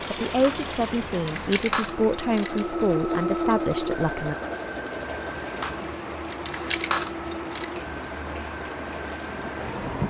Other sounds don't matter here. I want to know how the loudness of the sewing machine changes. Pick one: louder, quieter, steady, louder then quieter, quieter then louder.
louder then quieter.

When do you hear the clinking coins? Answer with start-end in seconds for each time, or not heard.
0.4-2.6, 5.6-7.8.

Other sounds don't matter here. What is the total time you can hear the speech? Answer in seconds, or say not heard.
4 s.